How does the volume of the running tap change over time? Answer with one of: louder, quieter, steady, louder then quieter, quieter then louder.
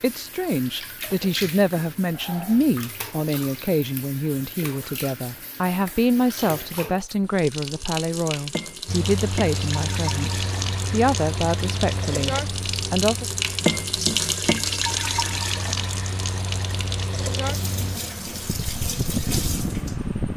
louder then quieter.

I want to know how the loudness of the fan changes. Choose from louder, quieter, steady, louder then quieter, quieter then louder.
quieter then louder.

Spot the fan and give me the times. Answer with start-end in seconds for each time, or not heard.
8.8-20.3.